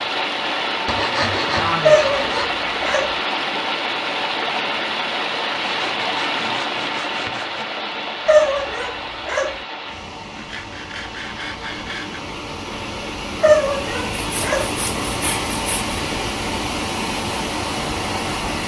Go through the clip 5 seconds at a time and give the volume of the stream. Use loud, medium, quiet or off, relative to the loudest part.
loud, loud, medium, loud.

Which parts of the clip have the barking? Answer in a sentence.
The barking can be heard from 1.9 to 3.1 s, from 8.2 to 9.6 s and from 13.4 to 14.7 s.